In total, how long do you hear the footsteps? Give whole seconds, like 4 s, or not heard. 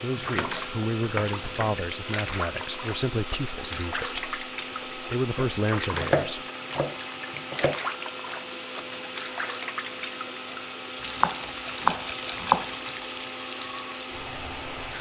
not heard.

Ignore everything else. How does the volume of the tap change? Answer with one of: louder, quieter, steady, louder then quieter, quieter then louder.
steady.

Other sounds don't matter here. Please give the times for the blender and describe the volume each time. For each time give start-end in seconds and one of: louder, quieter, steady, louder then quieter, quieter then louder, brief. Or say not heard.
0.0-14.9 steady.